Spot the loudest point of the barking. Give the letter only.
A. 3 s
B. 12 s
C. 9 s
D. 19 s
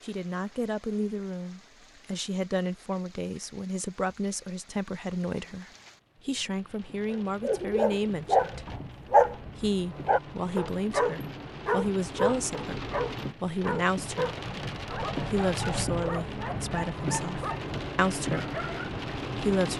C.